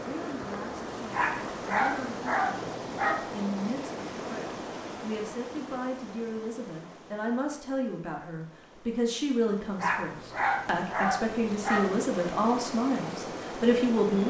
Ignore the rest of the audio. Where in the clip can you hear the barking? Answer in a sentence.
You can hear the barking from 1.1 to 3.4 s and from 9.8 to 12.0 s.